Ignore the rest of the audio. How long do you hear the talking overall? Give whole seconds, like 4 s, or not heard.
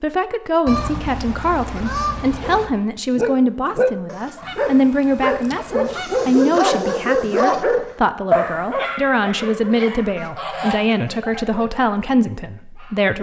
13 s.